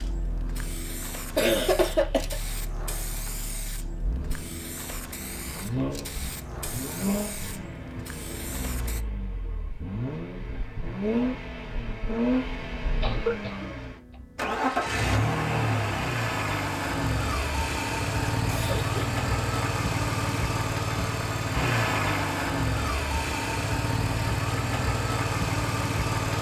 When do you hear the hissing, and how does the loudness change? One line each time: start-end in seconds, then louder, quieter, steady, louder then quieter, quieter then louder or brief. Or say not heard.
0.0-9.1 steady.